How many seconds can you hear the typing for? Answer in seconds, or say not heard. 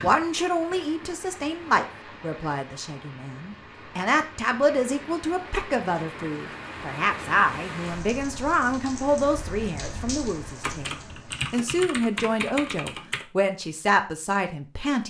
3 s.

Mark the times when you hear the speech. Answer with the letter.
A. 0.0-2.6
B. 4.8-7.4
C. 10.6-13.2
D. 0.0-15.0
D.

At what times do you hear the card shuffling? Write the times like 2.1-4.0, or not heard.
not heard.